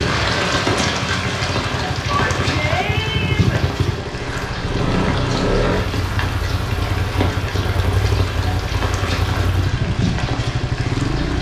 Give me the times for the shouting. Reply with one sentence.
You can hear the shouting from 2.0 to 3.6 s.